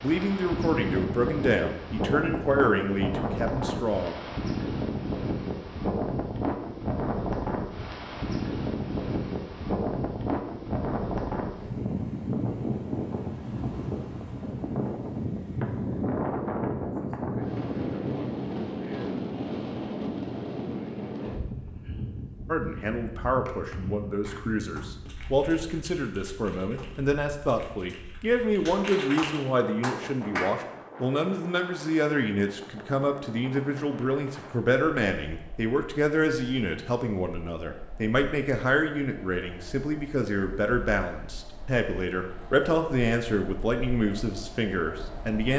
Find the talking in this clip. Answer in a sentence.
The talking can be heard from 0.0 to 4.2 s and from 22.5 to 45.5 s.